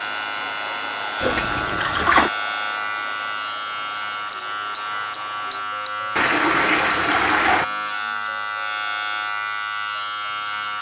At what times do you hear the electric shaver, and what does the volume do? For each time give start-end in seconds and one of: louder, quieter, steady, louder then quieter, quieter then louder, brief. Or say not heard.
0.0-10.7 steady.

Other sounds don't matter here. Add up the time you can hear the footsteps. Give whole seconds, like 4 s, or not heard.
not heard.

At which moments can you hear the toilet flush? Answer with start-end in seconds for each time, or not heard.
1.2-2.3, 6.2-7.7.